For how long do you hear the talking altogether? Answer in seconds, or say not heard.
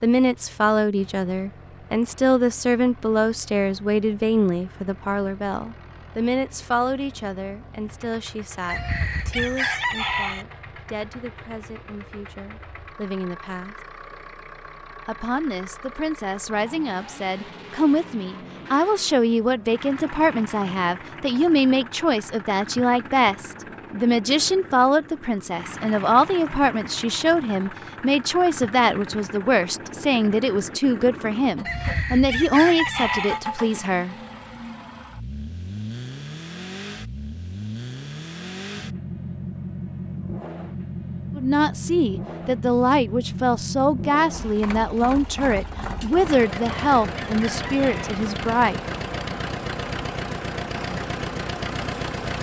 40 s.